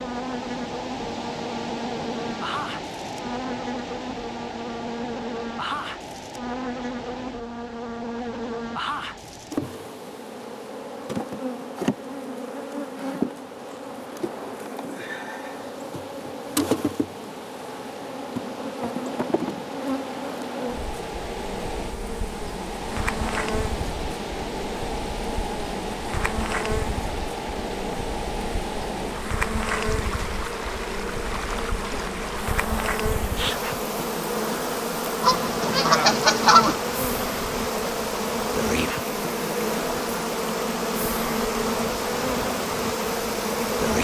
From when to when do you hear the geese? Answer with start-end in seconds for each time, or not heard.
35.2-36.8.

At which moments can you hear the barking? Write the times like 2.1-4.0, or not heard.
not heard.